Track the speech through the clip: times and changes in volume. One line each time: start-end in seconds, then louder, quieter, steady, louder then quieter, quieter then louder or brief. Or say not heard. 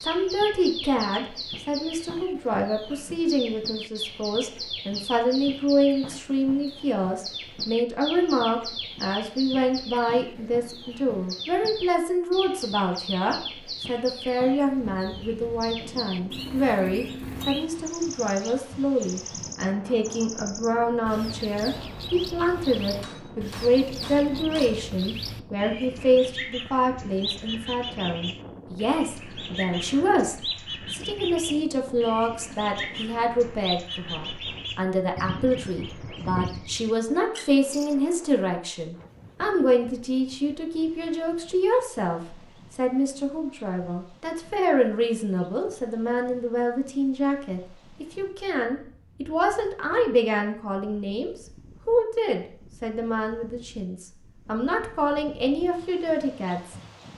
0.0-56.8 steady.